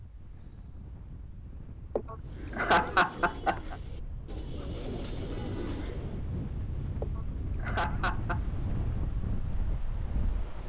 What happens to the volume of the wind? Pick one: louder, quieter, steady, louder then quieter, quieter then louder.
louder.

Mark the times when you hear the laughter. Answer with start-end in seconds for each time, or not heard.
1.9-3.8, 7.0-8.4.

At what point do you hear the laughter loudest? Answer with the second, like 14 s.
3 s.